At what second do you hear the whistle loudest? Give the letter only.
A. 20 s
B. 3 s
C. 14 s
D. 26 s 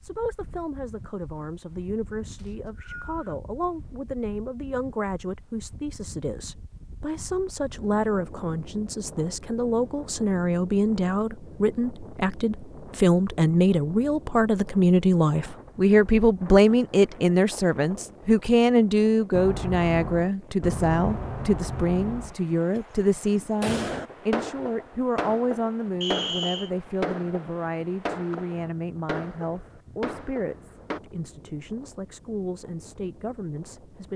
D.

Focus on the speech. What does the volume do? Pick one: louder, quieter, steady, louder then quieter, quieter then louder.
louder then quieter.